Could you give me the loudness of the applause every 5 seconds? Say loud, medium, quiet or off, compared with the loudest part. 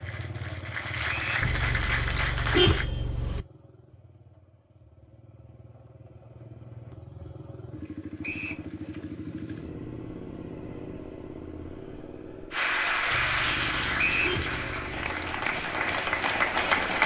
medium, off, loud, loud.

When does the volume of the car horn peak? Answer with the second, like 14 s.
3 s.